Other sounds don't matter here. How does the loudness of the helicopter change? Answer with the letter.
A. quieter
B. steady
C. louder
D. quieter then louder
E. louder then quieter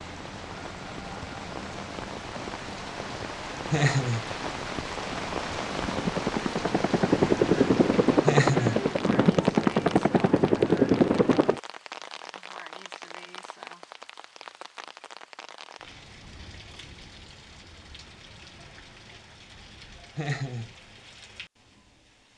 C.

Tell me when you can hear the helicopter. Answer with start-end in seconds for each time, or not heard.
0.0-11.6.